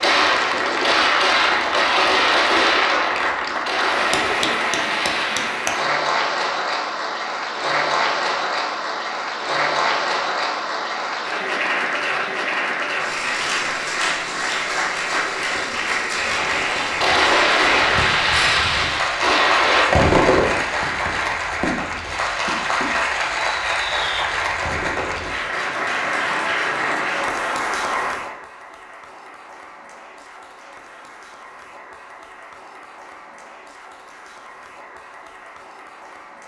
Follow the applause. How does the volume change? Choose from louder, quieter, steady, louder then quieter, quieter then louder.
quieter.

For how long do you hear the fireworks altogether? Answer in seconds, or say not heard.
15 s.